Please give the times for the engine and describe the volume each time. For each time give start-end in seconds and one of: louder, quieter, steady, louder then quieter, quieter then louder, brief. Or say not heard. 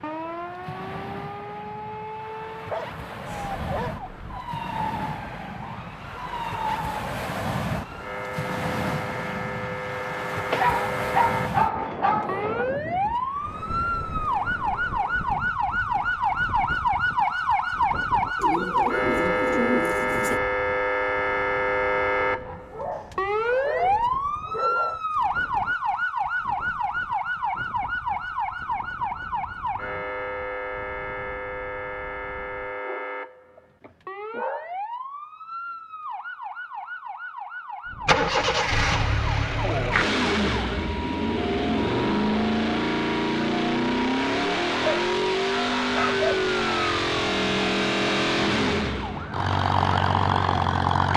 37.9-51.1 steady.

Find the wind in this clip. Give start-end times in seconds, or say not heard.
0.0-32.8.